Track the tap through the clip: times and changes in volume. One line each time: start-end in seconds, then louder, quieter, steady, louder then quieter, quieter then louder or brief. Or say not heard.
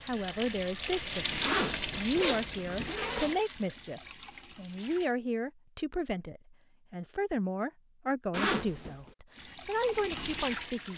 0.0-5.2 quieter
9.3-10.9 brief.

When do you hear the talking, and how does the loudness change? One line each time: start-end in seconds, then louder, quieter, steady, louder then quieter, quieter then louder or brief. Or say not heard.
0.1-10.9 steady.